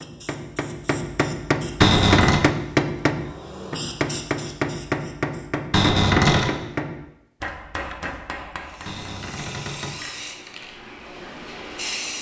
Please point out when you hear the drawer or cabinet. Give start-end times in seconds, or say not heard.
1.8-2.4, 5.7-6.5, 8.8-10.0.